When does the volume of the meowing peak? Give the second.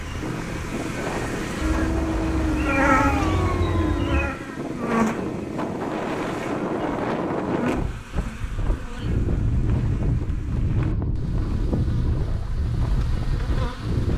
3 s.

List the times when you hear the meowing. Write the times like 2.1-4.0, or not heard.
1.6-4.4.